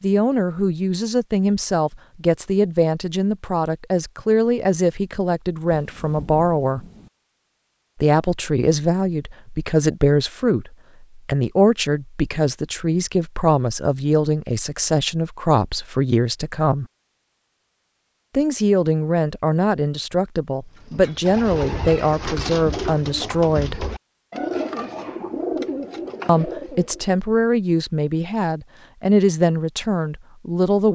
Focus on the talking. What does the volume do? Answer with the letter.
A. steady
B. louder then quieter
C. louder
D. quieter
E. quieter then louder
A.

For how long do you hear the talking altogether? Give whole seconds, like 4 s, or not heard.
26 s.